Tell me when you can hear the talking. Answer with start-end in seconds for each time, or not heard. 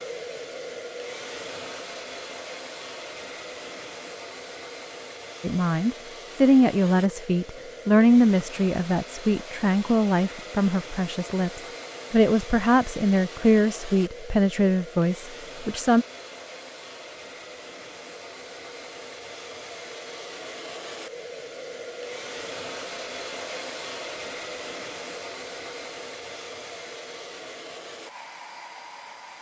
5.4-16.1.